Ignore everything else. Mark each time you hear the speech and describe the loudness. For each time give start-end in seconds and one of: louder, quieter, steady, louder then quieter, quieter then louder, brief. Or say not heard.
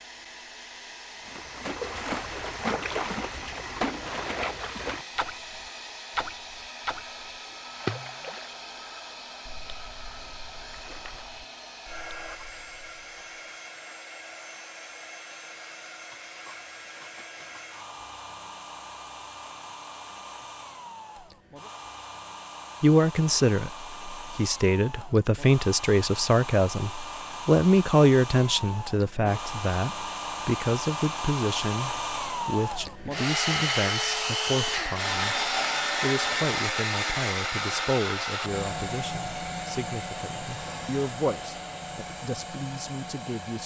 22.8-43.6 quieter.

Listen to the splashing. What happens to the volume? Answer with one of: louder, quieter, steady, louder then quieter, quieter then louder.
quieter.